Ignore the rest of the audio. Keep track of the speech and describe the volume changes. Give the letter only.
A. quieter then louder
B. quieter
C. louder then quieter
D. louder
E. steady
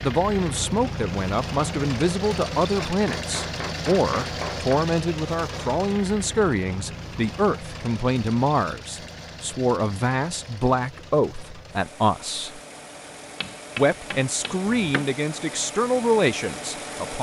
E.